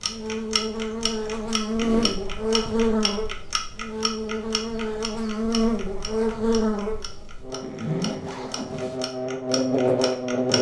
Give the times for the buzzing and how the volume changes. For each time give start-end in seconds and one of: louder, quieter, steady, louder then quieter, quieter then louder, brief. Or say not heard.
0.0-10.5 steady.